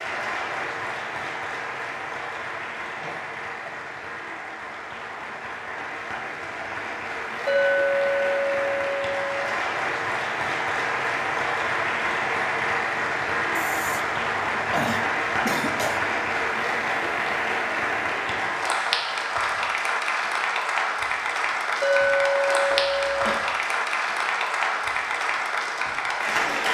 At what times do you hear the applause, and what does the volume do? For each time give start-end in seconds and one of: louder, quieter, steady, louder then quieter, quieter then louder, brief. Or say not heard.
0.0-26.6 louder.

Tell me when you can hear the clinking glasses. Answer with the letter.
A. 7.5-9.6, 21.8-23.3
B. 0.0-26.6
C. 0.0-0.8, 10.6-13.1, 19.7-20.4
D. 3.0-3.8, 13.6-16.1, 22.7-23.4
A.